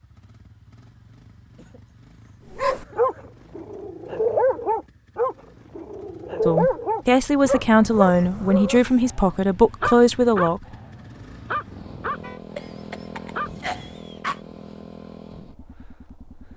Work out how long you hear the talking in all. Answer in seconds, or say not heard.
4 s.